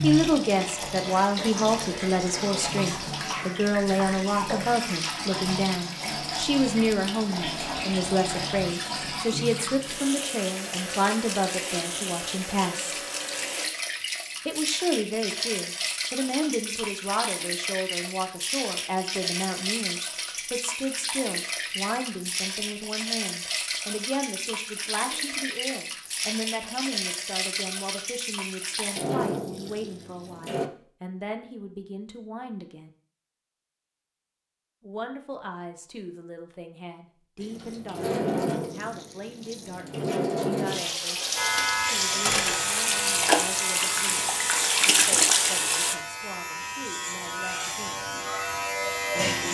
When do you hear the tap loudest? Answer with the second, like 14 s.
45 s.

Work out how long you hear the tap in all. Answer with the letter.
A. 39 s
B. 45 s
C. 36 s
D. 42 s
A.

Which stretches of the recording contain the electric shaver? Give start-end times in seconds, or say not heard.
41.4-49.5.